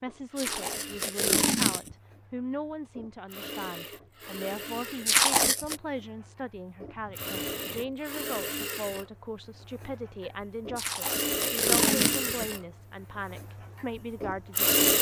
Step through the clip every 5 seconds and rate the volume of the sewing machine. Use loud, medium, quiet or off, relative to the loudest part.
medium, medium, loud.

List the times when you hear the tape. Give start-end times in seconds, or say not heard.
0.3-1.9, 5.0-5.8, 10.8-12.4.